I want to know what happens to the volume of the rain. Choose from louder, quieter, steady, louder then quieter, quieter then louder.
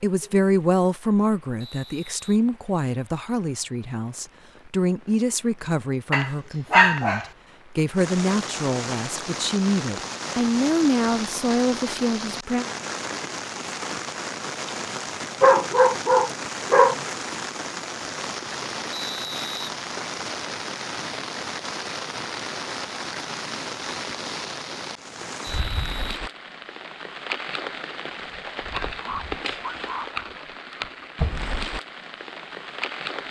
louder.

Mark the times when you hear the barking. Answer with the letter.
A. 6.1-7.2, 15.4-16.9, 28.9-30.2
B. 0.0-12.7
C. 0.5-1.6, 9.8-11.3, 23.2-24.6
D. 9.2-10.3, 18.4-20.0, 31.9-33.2
A.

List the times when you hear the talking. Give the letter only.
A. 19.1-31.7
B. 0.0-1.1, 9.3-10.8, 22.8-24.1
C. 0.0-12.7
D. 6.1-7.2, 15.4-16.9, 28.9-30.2
C.